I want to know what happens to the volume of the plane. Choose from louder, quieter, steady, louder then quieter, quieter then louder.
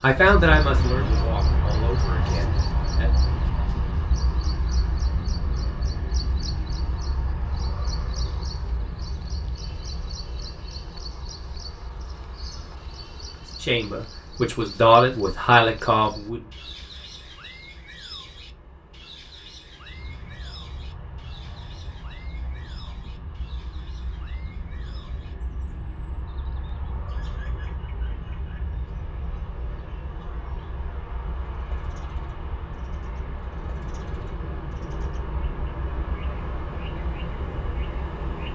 quieter then louder.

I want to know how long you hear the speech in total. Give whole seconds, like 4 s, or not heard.
6 s.